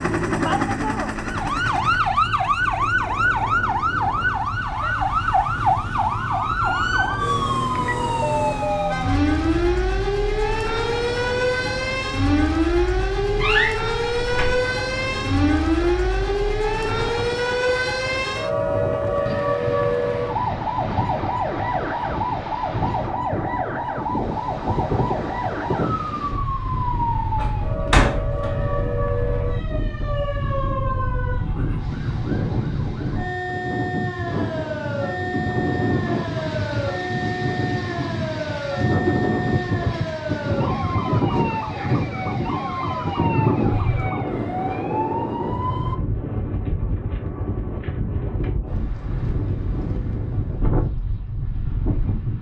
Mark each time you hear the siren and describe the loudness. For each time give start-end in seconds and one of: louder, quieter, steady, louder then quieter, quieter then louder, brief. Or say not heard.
0.0-46.0 quieter.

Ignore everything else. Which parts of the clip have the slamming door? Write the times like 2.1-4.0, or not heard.
13.4-14.6, 27.4-28.6.